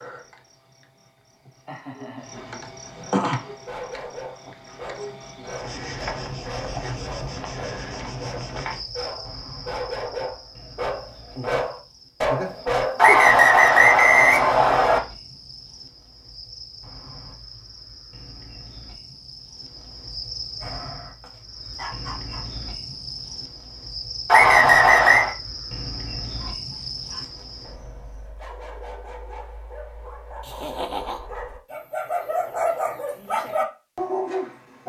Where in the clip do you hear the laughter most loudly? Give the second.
31 s.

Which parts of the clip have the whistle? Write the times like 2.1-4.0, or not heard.
12.9-15.0, 24.2-25.4.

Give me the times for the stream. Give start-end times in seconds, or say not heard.
not heard.